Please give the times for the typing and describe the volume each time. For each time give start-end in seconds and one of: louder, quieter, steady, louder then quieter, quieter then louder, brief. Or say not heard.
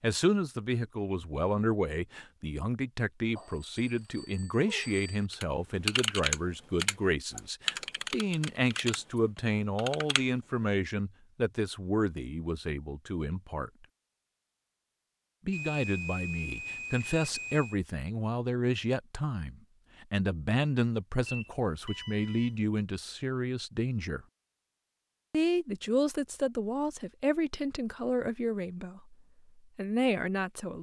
5.3-10.2 quieter.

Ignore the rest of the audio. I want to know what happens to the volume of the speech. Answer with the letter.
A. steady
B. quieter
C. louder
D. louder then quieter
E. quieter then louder
A.